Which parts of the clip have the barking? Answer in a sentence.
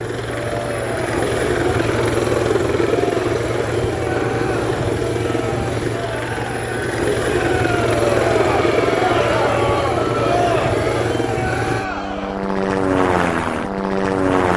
The barking can't be heard in this clip.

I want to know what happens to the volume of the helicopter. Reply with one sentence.
The volume of the helicopter stays about the same.